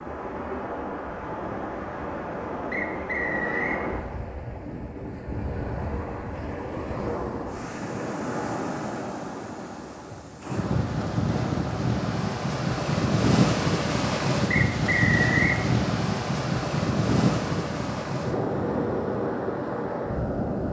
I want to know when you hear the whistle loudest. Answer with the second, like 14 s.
15 s.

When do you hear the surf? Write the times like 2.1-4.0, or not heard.
0.0-20.6.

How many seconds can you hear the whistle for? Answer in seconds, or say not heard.
2 s.